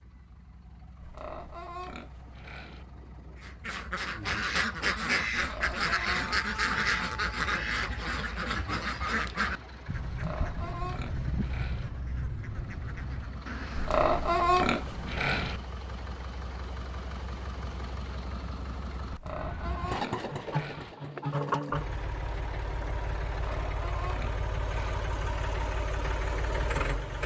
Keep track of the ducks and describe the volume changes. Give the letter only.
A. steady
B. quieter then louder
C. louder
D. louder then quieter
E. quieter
E.